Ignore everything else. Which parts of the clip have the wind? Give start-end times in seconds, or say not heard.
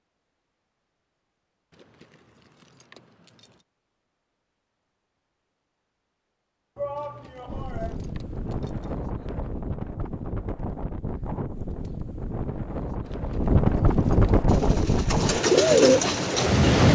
7.5-16.9.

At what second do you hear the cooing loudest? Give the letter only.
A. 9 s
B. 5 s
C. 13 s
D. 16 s
D.